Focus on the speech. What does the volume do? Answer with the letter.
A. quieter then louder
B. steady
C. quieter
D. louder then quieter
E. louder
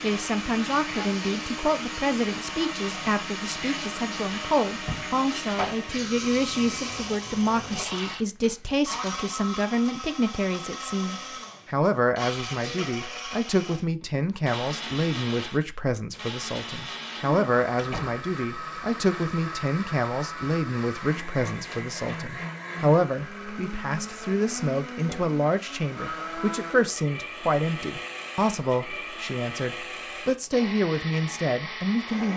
B.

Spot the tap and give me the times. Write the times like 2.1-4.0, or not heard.
0.0-8.2.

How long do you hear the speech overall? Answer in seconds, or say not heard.
32 s.